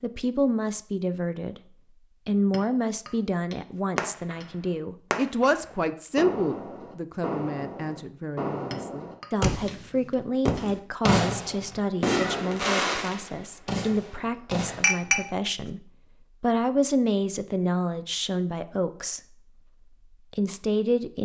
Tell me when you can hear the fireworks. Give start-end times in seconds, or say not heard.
4.0-15.2.